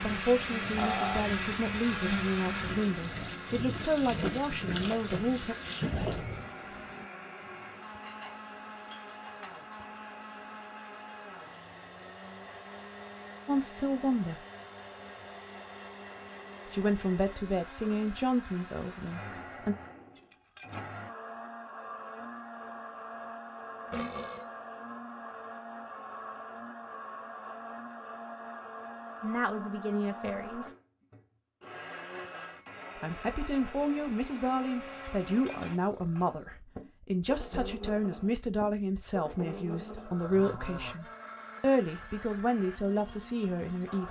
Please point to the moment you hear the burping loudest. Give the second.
1 s.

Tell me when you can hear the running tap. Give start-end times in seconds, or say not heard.
0.0-7.0.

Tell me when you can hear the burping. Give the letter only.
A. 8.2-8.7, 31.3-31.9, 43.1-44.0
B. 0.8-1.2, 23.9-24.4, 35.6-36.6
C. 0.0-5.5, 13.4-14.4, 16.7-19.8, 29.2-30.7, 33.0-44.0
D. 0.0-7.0
B.